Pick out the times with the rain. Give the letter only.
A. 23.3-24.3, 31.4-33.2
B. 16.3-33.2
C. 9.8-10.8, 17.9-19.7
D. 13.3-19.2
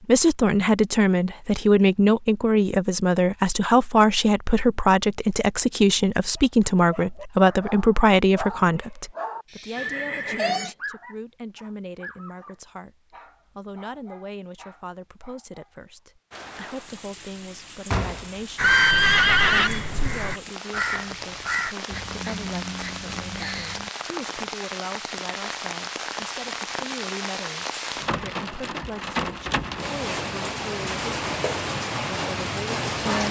B.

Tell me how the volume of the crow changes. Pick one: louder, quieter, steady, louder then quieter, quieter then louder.
quieter.